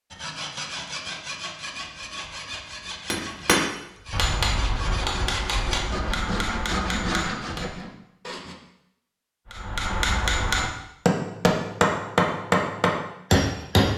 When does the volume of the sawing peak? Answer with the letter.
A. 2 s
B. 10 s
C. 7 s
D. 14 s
C.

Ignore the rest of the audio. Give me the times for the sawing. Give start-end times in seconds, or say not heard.
0.1-8.6.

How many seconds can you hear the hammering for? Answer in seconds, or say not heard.
9 s.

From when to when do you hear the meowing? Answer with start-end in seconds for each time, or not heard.
not heard.